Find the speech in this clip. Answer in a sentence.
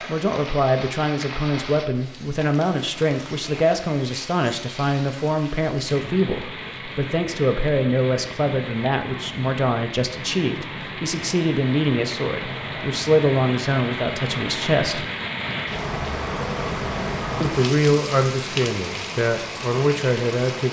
The speech can be heard from 0.1 to 15.1 s and from 17.4 to 20.6 s.